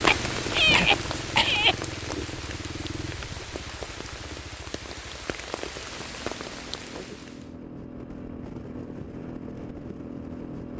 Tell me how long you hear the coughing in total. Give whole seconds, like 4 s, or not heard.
2 s.